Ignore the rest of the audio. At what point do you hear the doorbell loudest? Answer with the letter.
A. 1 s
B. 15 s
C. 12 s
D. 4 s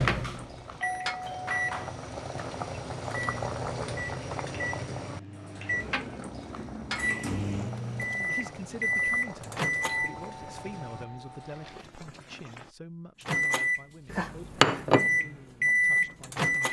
A.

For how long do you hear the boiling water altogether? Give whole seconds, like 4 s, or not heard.
13 s.